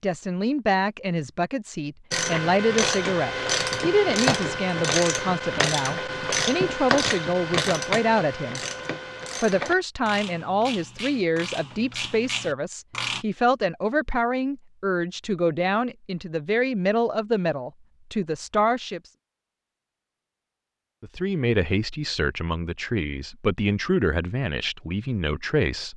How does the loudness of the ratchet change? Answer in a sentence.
The loudness of the ratchet goes down.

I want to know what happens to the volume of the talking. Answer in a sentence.
The loudness of the talking stays about the same.